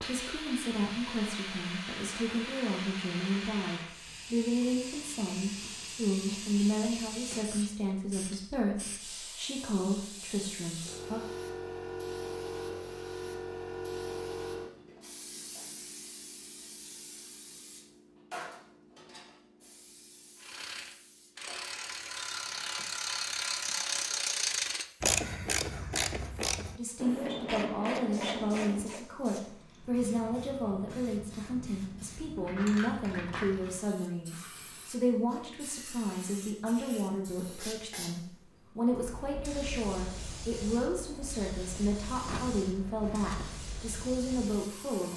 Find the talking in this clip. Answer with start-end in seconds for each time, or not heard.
0.1-11.2, 26.8-45.1.